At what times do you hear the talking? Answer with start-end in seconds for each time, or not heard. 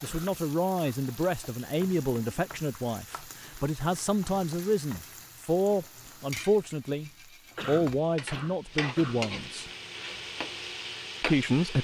0.0-9.7, 11.2-11.7.